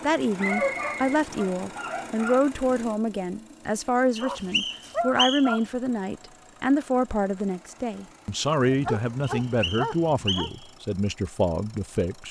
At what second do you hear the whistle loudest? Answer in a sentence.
The volume of the whistle peaks at 5 seconds.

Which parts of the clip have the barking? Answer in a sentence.
The barking can be heard from 0.4 to 2.4 s, from 4.2 to 5.6 s and from 8.7 to 10.5 s.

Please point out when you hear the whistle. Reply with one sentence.
You can hear the whistle from 0.3 to 1.1 s, from 4.2 to 5.6 s and from 9.4 to 10.7 s.